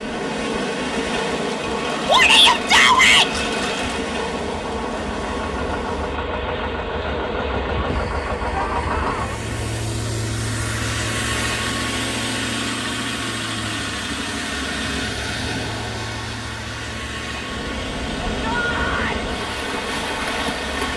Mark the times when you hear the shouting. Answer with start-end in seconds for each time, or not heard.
2.0-3.3, 8.5-9.4, 18.4-19.2.